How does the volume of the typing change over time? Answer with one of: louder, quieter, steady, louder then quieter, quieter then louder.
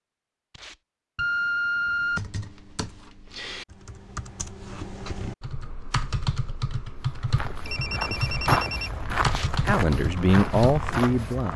louder.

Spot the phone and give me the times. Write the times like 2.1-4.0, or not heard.
1.1-2.3, 7.7-8.9.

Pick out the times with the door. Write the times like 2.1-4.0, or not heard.
not heard.